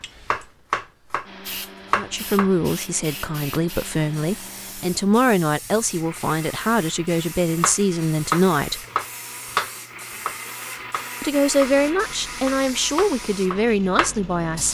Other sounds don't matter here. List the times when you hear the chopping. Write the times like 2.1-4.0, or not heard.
0.3-2.5, 7.5-14.2.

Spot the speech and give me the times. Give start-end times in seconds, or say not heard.
1.9-8.8, 11.2-14.7.